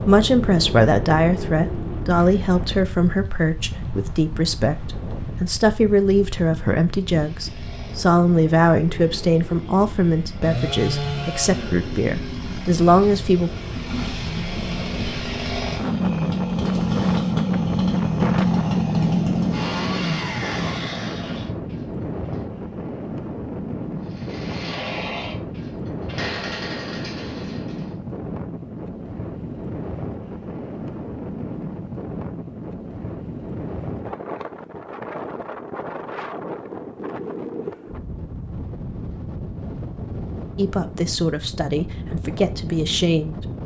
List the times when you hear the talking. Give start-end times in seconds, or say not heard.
0.1-13.5, 40.5-43.4.